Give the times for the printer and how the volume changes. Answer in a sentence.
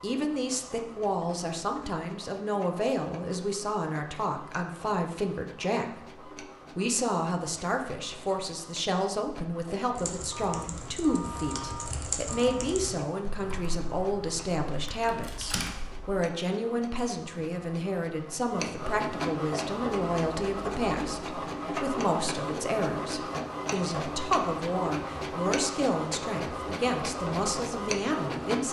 You can hear the printer from 0.0 to 28.6 s, getting louder.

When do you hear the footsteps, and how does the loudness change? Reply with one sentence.
The footsteps can't be heard in this clip.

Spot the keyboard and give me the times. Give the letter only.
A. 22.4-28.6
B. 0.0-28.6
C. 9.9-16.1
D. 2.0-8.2
C.